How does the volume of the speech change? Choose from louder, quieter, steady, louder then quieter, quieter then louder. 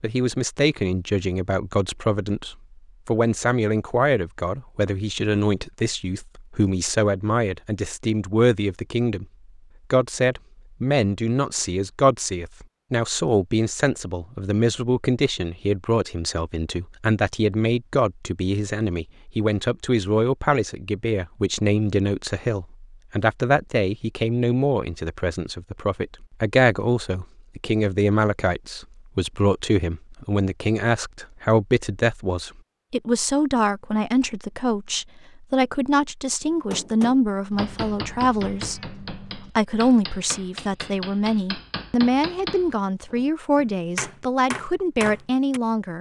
steady.